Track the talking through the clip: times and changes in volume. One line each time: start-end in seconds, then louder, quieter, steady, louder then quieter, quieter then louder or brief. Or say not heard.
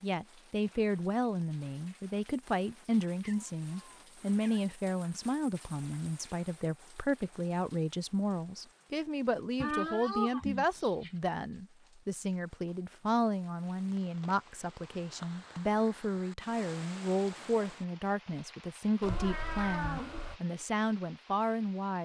0.0-21.9 steady.